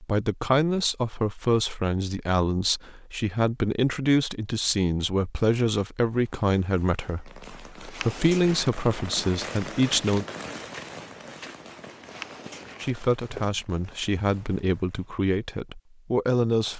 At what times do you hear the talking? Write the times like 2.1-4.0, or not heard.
0.0-10.2, 12.8-16.7.